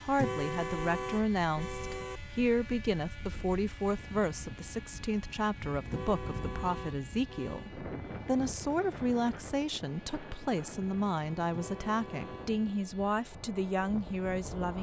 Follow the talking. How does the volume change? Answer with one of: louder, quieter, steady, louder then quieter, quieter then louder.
steady.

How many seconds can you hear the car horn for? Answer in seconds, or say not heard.
5 s.